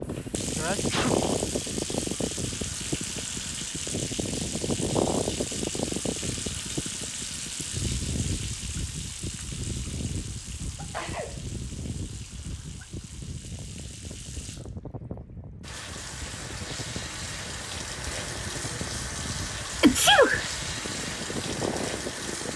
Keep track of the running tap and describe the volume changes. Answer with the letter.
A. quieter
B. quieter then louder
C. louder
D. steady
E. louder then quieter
B.